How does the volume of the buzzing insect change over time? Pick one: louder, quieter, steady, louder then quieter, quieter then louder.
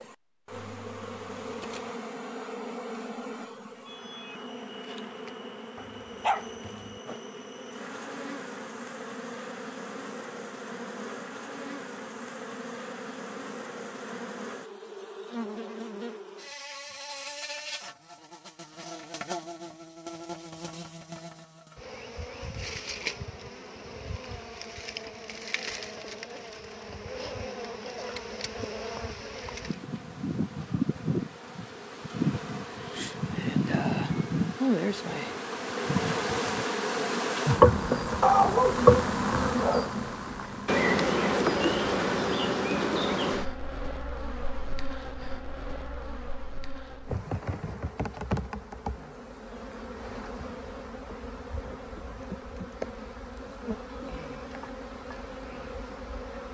louder then quieter.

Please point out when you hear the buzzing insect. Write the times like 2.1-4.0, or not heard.
0.0-56.4.